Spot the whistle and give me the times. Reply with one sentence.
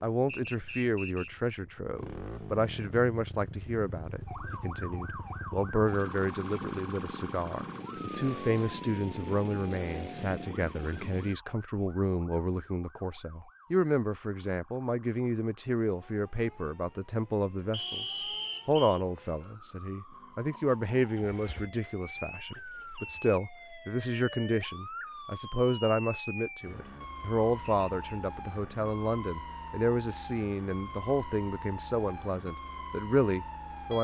You can hear the whistle from 0.2 to 1.3 s, from 17.7 to 19.0 s and from 27.6 to 28.1 s.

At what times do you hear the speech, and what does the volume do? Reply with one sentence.
You can hear the speech from 0.0 to 33.9 s, at a steady volume.